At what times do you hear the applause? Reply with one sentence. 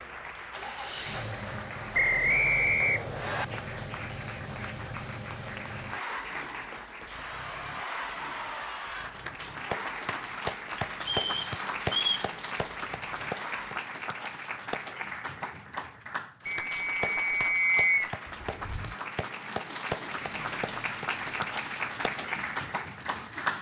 The applause can be heard from 0.0 to 23.5 s.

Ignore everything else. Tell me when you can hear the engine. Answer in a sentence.
You can hear the engine from 0.0 to 13.8 s and from 18.2 to 23.5 s.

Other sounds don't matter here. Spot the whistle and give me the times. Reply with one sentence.
The whistle can be heard from 1.9 to 3.5 s, from 11.0 to 12.3 s and from 16.4 to 18.1 s.